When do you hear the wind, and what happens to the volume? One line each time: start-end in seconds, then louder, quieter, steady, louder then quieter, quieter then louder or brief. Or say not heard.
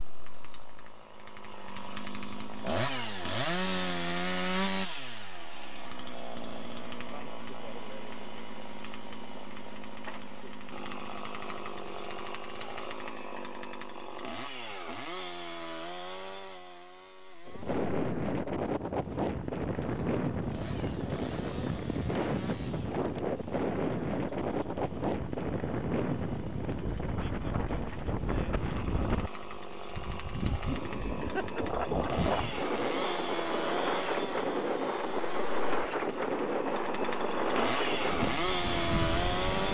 17.4-39.7 steady.